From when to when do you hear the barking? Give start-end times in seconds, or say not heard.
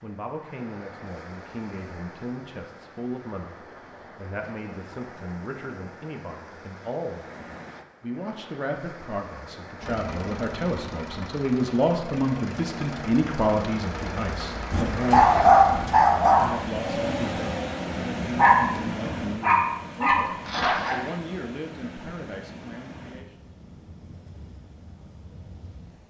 14.7-21.1.